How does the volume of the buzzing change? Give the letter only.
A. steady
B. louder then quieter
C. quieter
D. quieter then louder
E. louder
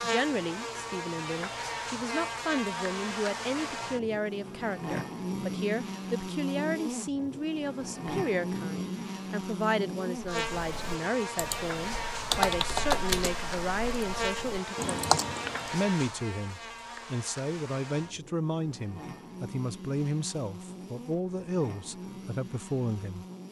C.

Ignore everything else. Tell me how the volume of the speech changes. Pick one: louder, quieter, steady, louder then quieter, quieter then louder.
steady.